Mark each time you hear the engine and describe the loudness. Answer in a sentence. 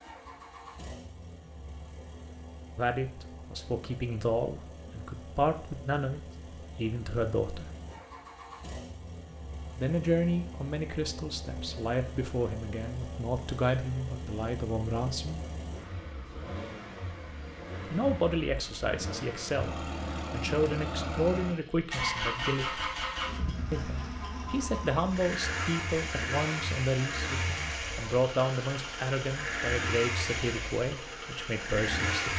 The engine can be heard from 0.0 to 32.3 s, getting louder.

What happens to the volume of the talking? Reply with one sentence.
The volume of the talking stays about the same.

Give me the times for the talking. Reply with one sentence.
You can hear the talking from 2.8 to 7.7 s, from 9.8 to 15.4 s, from 17.9 to 22.9 s and from 23.7 to 32.3 s.